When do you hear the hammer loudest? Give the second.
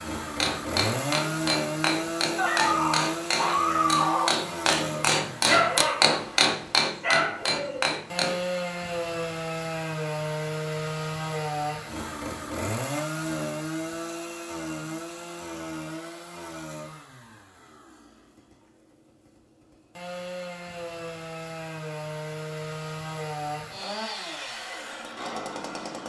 6 s.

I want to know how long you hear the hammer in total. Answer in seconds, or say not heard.
8 s.